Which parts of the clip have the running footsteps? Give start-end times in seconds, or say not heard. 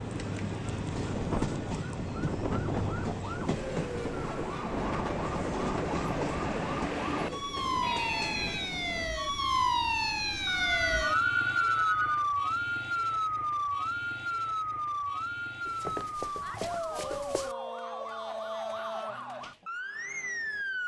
15.7-17.6.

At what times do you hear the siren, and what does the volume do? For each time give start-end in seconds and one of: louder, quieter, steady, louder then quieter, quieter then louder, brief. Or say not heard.
0.0-20.8 louder then quieter.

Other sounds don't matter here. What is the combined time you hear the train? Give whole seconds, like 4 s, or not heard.
9 s.